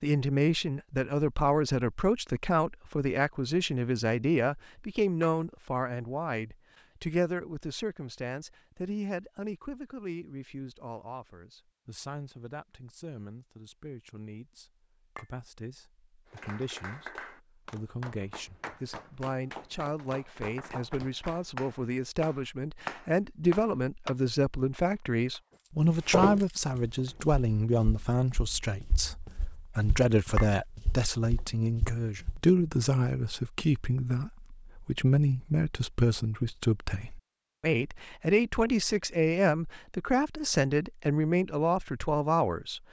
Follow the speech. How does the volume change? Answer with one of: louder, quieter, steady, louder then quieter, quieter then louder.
quieter then louder.